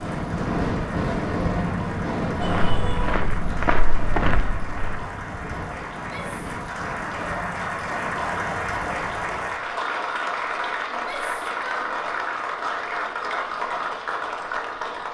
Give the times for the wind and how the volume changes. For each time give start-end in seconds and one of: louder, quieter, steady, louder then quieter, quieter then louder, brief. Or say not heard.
0.0-9.7 quieter.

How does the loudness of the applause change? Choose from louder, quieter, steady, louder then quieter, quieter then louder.
louder.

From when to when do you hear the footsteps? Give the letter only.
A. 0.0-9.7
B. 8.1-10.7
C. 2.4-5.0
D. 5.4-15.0
C.